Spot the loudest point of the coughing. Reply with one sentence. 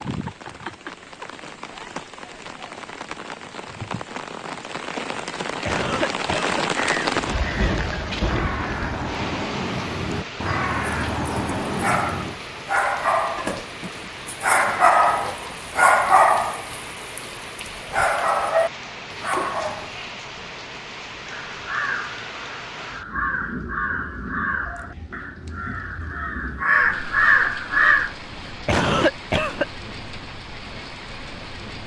The loudest moment of the coughing is at 29 seconds.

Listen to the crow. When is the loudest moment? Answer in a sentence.
The volume of the crow peaks at 27 seconds.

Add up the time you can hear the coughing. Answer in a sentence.
You can hear the coughing for 2 seconds altogether.